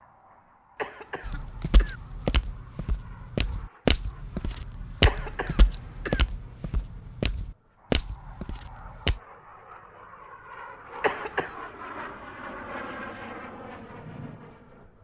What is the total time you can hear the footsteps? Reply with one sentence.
You can hear the footsteps for 8 seconds altogether.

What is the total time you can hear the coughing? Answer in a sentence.
The coughing can be heard for 3 seconds in total.